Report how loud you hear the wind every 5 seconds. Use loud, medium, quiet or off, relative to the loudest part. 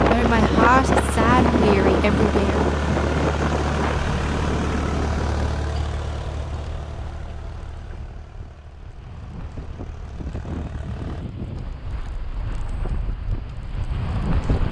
loud, quiet, medium.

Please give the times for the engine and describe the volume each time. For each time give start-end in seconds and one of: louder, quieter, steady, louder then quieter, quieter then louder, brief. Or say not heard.
0.0-11.2 quieter.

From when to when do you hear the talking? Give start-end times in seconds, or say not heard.
0.1-2.6.